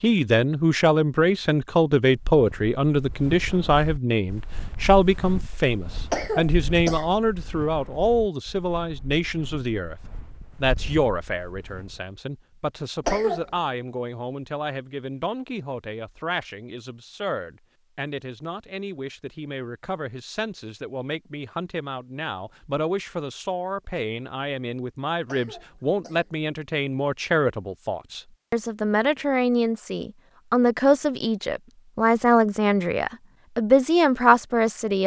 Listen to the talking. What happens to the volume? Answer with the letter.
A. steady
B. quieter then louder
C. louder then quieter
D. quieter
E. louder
B.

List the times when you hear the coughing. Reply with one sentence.
You can hear the coughing from 6.1 to 7.1 s, from 13.1 to 13.6 s and from 25.2 to 26.3 s.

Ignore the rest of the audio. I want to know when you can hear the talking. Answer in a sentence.
You can hear the talking from 0.0 to 35.0 s.